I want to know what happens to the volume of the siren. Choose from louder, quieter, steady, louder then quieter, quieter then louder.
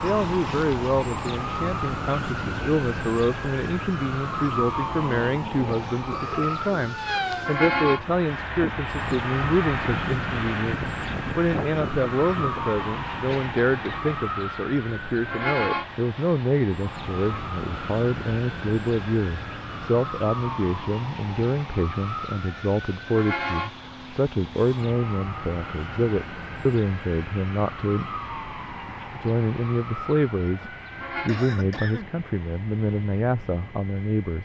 quieter.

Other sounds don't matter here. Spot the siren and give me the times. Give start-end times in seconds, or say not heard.
0.0-31.3.